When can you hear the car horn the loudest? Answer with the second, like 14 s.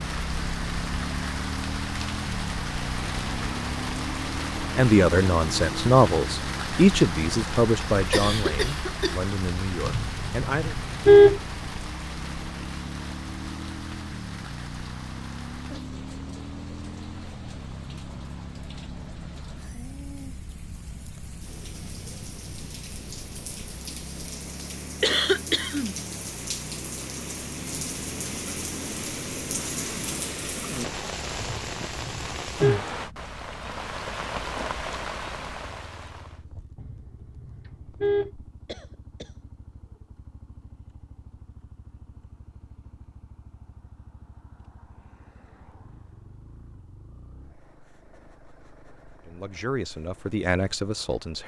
11 s.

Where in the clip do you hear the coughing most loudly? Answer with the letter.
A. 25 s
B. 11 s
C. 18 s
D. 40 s
A.